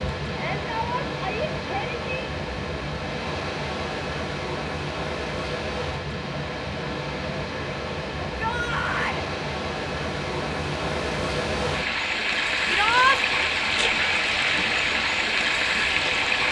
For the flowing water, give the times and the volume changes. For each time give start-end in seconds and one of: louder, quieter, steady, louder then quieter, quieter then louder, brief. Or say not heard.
0.0-16.4 louder.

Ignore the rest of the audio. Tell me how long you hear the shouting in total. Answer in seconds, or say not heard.
3 s.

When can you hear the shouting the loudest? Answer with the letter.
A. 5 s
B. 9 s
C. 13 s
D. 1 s
C.